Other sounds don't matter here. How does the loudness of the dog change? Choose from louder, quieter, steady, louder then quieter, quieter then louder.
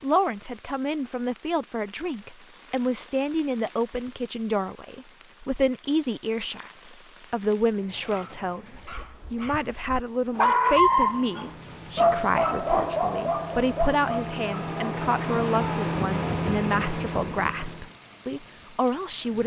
louder then quieter.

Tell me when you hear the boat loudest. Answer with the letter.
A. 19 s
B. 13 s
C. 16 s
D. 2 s
C.